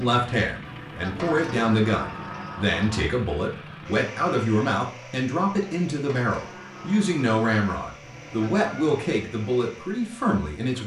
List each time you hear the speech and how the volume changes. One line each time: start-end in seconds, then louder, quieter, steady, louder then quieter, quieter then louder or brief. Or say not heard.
0.0-10.8 steady.